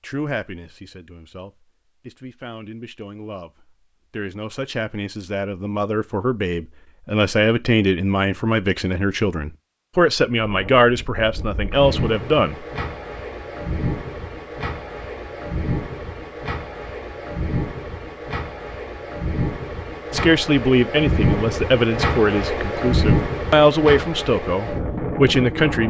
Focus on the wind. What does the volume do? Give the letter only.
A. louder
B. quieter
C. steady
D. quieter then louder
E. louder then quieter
A.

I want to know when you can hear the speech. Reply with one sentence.
The speech can be heard from 0.0 to 12.7 s and from 20.1 to 25.8 s.